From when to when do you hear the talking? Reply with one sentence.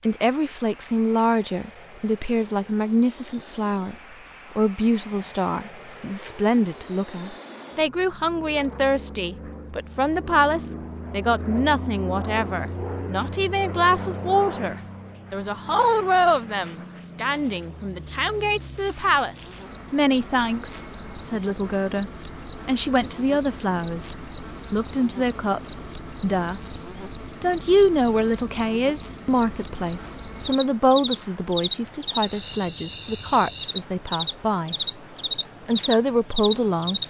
The talking can be heard from 0.0 to 4.0 s, from 4.5 to 34.8 s and from 35.6 to 37.0 s.